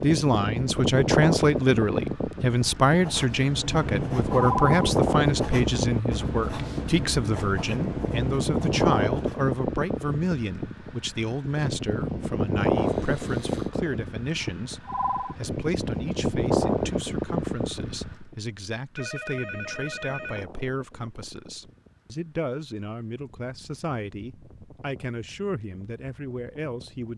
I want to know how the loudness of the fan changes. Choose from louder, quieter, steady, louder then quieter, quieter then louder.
quieter.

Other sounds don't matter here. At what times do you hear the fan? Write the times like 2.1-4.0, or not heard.
0.0-27.1.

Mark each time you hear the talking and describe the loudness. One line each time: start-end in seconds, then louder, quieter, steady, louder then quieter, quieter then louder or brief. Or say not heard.
0.0-27.1 quieter.